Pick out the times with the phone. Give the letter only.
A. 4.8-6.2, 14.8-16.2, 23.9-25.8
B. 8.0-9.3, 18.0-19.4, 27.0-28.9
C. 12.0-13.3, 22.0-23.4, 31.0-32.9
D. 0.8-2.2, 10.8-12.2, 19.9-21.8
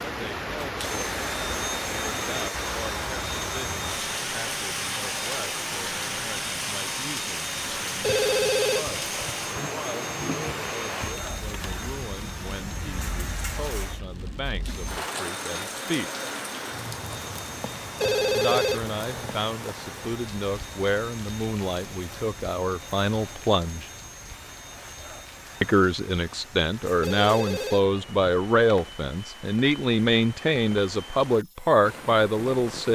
B.